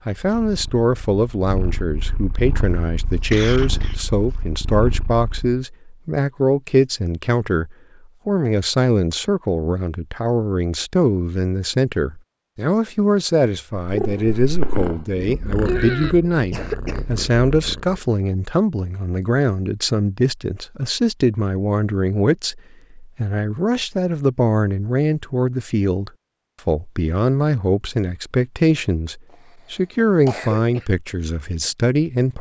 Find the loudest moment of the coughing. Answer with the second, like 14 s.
16 s.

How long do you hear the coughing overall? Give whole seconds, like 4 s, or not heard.
4 s.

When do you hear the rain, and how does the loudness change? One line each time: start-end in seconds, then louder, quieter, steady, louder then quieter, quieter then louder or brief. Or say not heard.
not heard.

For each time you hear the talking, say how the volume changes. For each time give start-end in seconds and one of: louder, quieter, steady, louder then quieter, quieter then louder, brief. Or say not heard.
0.1-32.3 steady.